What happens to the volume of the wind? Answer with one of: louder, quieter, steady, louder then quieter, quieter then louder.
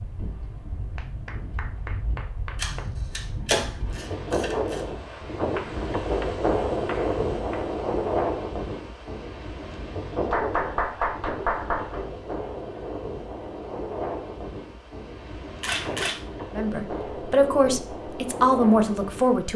louder then quieter.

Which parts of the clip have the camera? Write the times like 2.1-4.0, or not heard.
2.5-4.8, 15.6-16.2.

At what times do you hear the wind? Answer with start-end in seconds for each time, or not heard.
0.0-19.5.